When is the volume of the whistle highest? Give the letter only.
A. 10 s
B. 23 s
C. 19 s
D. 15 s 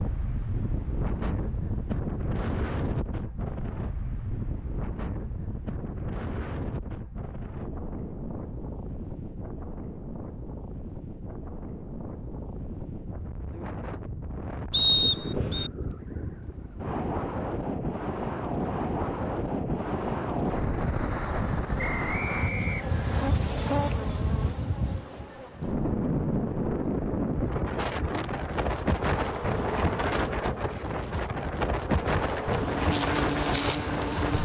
D.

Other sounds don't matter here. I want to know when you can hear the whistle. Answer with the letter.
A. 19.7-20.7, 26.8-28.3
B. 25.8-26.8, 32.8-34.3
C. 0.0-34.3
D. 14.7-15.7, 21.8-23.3
D.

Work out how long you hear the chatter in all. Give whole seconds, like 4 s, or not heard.
not heard.